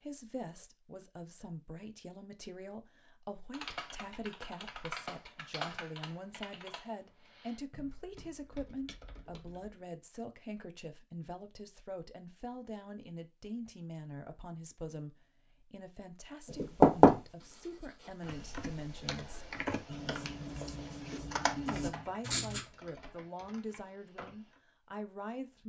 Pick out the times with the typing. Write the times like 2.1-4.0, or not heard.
3.5-9.8, 18.2-24.6.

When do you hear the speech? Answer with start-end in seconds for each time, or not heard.
0.0-19.4, 21.6-25.6.